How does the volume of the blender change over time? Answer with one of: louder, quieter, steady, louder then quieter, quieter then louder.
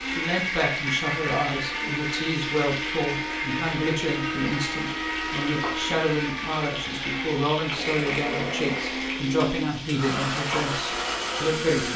steady.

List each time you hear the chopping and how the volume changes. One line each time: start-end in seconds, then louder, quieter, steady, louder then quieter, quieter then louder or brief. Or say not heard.
not heard.